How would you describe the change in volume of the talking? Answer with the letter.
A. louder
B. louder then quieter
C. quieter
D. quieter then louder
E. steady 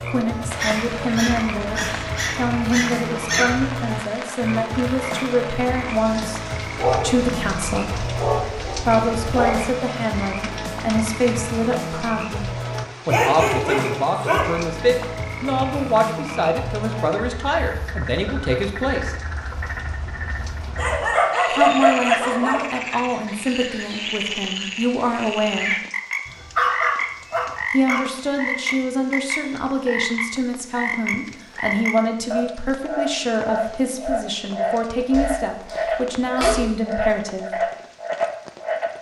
E.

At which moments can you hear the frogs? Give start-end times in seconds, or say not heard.
0.0-38.9.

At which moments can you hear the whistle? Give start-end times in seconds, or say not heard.
not heard.